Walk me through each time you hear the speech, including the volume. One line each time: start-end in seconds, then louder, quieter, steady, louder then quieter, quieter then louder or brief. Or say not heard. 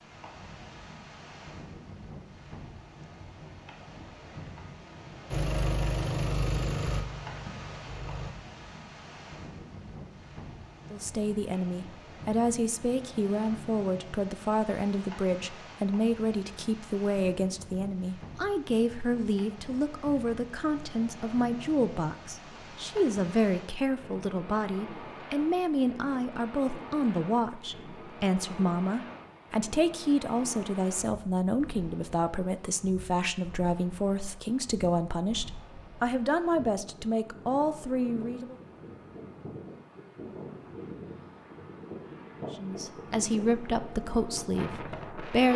10.9-38.5 steady
42.5-45.5 brief.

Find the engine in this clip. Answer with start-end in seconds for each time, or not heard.
5.3-8.3.